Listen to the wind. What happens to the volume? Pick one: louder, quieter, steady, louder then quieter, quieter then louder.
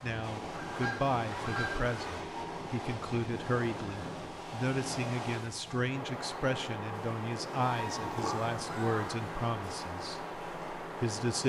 steady.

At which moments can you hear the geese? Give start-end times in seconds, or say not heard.
0.5-2.2, 7.7-9.2.